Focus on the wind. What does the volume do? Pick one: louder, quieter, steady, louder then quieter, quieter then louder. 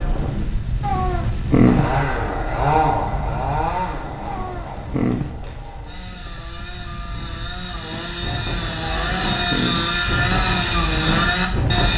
quieter then louder.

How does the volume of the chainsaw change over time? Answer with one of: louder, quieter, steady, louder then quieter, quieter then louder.
quieter then louder.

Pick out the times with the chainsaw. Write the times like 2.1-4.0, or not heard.
1.6-11.9.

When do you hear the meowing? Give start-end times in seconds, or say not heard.
0.8-1.9, 4.2-5.3, 8.8-9.9.